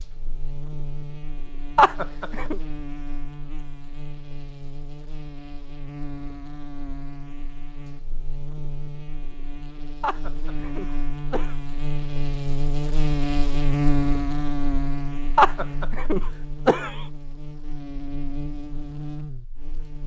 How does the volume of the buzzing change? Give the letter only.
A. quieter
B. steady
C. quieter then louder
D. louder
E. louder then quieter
E.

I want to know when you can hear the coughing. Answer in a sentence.
The coughing can be heard from 1.8 to 2.5 s, from 10.0 to 11.6 s and from 15.3 to 16.9 s.